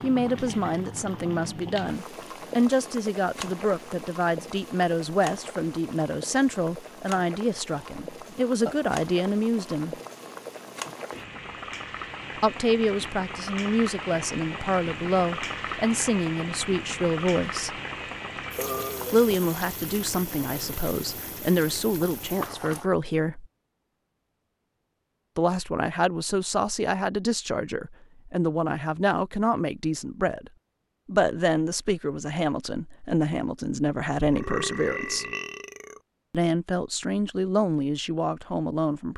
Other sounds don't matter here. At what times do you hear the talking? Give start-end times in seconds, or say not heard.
0.0-9.9, 12.3-17.7, 19.1-23.4, 25.4-35.2, 36.3-39.1.